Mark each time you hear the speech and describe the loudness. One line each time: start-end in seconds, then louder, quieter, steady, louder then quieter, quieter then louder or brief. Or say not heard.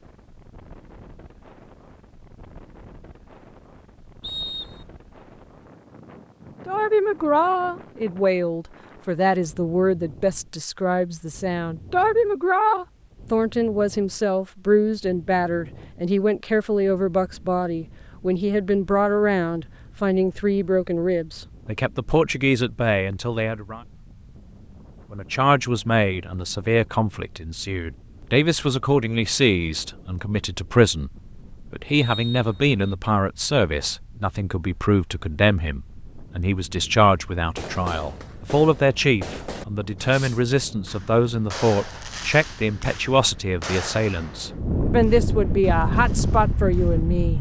6.7-23.8 steady
25.1-47.3 steady.